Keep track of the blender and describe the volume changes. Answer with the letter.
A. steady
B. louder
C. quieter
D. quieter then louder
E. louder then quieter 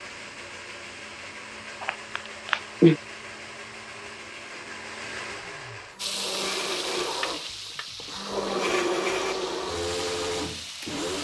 B.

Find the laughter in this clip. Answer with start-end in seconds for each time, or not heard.
1.8-3.0.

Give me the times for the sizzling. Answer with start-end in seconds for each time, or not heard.
6.0-11.2.